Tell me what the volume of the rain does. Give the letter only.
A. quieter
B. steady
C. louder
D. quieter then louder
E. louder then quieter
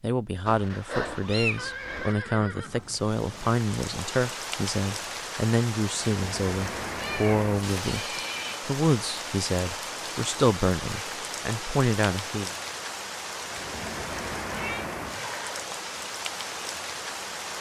B.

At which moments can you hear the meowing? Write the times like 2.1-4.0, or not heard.
0.5-2.1, 6.8-7.5, 13.8-14.8.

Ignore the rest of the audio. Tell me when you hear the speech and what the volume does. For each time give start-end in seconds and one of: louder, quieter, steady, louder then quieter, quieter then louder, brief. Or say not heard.
0.0-12.6 steady.